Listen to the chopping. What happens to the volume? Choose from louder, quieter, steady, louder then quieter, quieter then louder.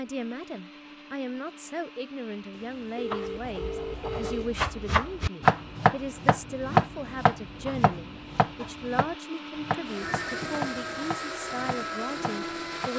louder then quieter.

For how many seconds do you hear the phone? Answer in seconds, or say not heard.
3 s.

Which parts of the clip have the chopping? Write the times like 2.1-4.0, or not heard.
3.1-12.9.